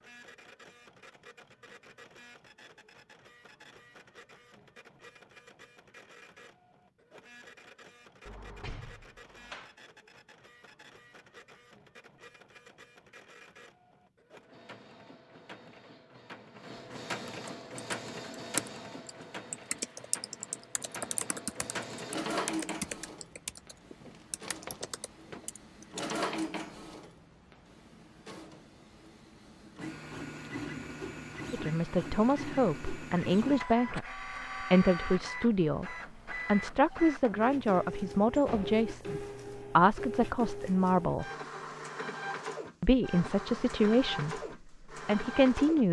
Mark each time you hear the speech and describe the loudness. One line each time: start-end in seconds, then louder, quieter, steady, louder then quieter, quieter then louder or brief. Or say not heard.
31.5-41.2 steady
42.8-44.4 brief
45.0-45.8 brief.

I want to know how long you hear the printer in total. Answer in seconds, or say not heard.
46 s.